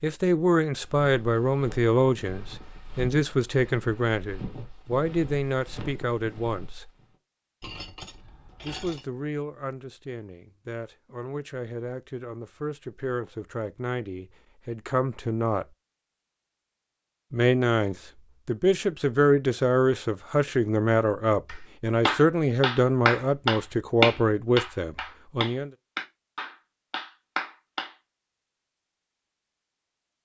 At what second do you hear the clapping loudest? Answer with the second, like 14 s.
24 s.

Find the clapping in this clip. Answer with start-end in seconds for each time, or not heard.
21.4-27.9.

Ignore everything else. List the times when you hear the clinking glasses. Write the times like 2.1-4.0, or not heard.
7.6-9.1.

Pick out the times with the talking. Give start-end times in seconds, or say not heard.
0.0-6.9, 8.6-15.7, 17.3-25.7.